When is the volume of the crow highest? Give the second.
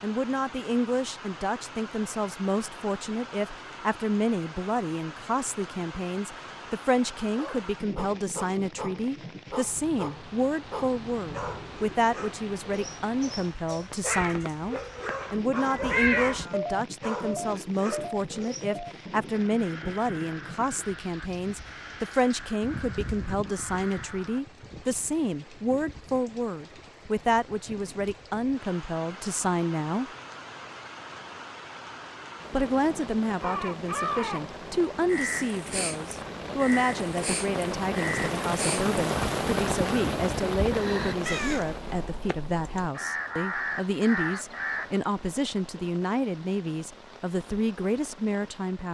16 s.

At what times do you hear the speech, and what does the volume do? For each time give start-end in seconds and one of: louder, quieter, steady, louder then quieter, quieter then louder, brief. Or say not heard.
0.0-30.1 steady
32.5-48.8 steady.